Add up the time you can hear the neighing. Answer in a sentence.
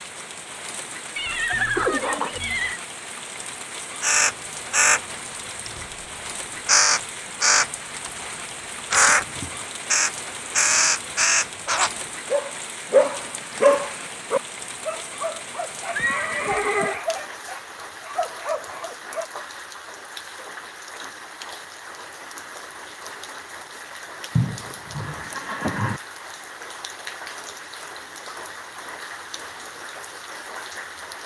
You can hear the neighing for 4 seconds altogether.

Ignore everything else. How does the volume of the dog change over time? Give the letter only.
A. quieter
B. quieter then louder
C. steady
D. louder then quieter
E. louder
A.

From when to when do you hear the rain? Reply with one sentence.
You can hear the rain from 0.0 to 31.2 s.